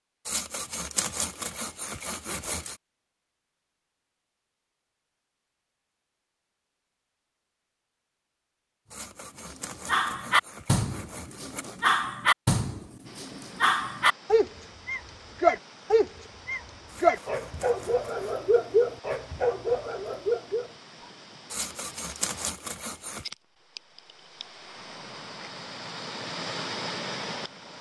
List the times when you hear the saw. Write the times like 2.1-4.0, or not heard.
0.2-2.8, 8.9-11.8, 16.9-18.4, 21.5-23.3.